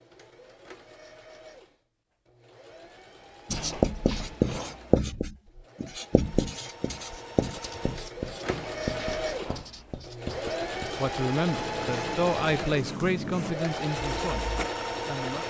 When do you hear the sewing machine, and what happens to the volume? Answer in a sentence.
The sewing machine can be heard from 0.0 to 15.4 s, getting louder.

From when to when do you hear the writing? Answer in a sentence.
You can hear the writing from 3.5 to 14.7 s.